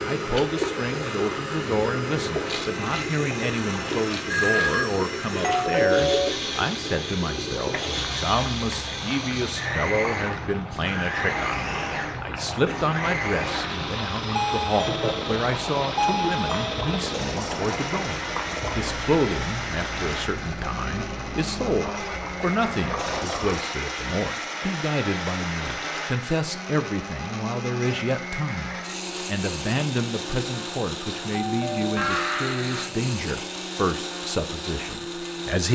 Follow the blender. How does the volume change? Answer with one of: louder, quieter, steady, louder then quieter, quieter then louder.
steady.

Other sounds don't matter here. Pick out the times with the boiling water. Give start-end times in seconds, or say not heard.
0.0-23.6.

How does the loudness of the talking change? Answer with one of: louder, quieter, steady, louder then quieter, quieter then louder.
steady.